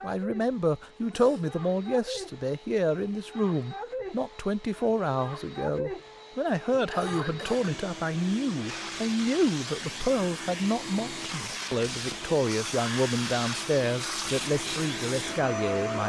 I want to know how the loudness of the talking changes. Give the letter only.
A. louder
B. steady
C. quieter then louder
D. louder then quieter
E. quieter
B.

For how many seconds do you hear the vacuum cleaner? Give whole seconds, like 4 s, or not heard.
16 s.